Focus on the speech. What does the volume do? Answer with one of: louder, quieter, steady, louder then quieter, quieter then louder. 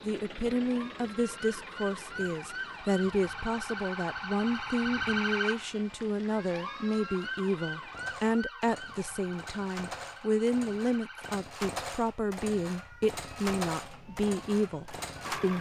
steady.